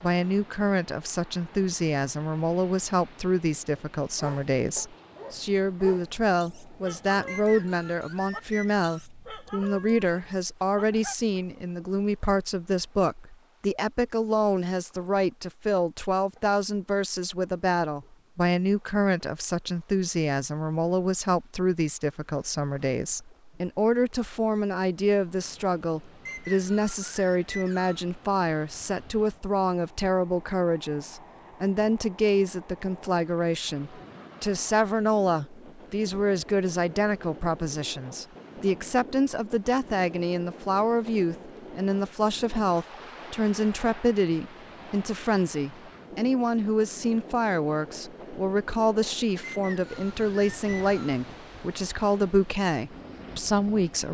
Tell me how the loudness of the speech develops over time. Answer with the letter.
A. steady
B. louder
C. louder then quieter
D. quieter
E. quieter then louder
A.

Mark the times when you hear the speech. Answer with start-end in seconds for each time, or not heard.
0.0-54.1.